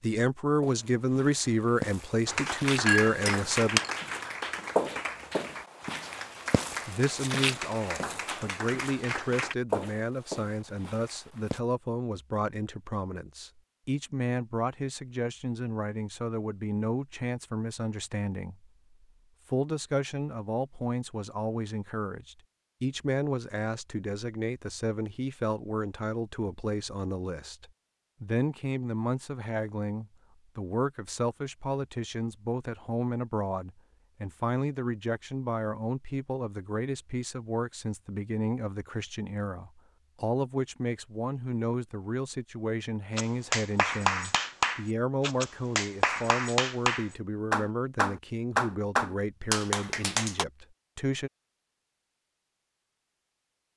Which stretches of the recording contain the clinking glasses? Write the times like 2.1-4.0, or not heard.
2.9-3.9.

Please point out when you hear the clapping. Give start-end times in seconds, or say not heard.
2.2-9.6, 43.1-50.5.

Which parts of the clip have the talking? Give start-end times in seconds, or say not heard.
0.0-3.8, 6.8-18.7, 19.4-51.3.